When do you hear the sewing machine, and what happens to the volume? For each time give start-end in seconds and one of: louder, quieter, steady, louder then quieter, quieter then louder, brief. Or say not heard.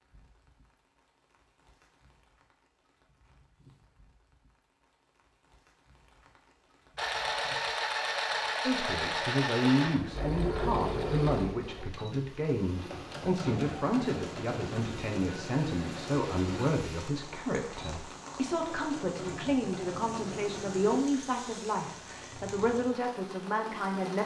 7.0-21.0 quieter.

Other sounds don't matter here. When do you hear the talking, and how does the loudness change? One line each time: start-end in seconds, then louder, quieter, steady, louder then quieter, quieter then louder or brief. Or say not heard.
8.6-24.2 steady.